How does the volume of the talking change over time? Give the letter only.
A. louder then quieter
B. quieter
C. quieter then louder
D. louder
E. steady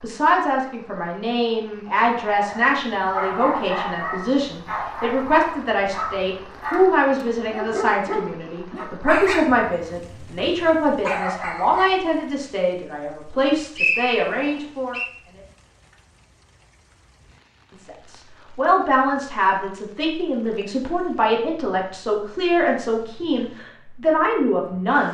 E.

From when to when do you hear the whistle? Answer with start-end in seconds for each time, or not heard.
13.8-15.1.